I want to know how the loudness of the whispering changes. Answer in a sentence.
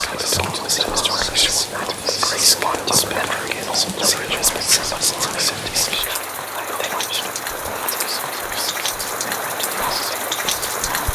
The loudness of the whispering goes down.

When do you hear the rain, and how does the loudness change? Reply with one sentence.
You can hear the rain from 0.0 to 11.1 s, getting louder.